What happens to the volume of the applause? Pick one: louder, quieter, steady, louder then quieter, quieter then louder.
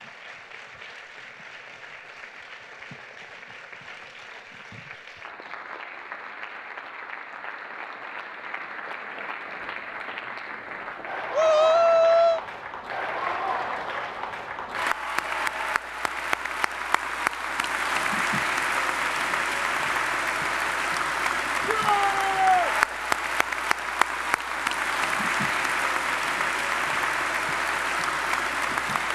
louder.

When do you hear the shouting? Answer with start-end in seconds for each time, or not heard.
11.3-12.4, 21.6-22.7.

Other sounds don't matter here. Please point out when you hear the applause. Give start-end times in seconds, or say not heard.
0.0-29.1.